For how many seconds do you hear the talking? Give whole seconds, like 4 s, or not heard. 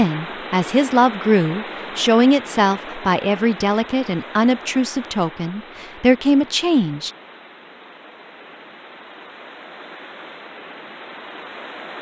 7 s.